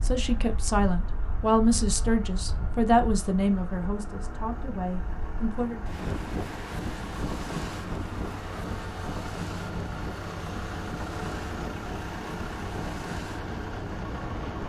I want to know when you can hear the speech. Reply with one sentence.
The speech can be heard from 0.0 to 5.8 s.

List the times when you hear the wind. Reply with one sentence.
You can hear the wind from 0.0 to 14.6 s.